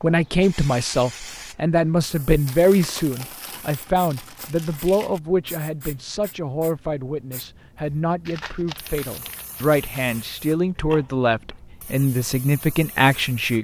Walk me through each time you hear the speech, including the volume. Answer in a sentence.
The speech can be heard from 0.0 to 13.5 s, getting quieter then louder.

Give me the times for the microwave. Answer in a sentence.
You can't hear the microwave here.